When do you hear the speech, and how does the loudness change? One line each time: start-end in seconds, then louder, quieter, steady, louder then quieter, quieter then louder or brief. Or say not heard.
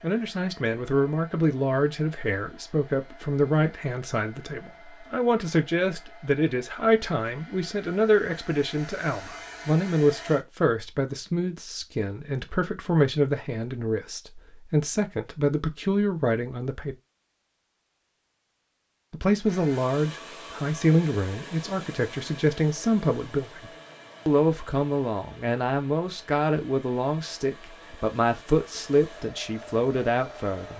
0.0-16.9 steady
19.1-30.7 steady.